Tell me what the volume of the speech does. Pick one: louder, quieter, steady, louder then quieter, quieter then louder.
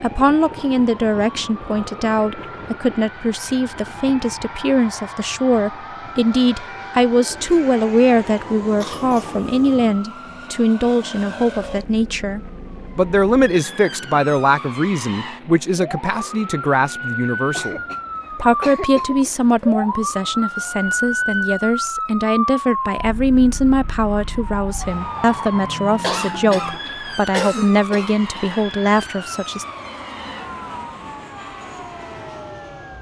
steady.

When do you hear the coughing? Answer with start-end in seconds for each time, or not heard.
8.8-9.4, 17.5-19.3, 26.0-28.6.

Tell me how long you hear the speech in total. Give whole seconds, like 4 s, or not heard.
30 s.